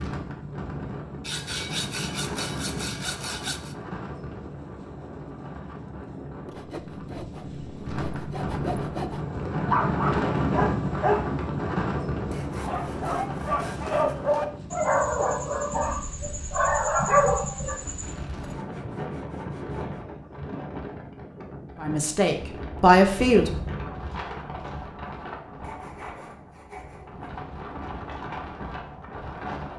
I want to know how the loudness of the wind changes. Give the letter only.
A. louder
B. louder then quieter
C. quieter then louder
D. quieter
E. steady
B.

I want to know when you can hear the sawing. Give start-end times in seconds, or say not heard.
1.2-3.8, 6.5-9.2, 12.3-14.2, 18.4-20.0, 25.6-27.2.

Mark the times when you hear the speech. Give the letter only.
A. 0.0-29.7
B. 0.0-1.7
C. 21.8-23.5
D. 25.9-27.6
C.